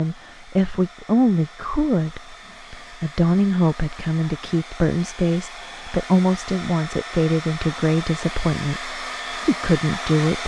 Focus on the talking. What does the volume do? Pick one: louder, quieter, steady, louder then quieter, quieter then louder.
steady.